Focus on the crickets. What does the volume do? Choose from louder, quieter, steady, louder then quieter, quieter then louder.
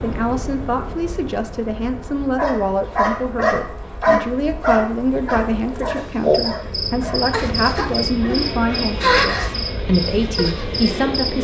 louder.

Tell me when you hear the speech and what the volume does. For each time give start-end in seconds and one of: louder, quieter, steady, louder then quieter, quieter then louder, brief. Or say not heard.
0.0-11.3 steady.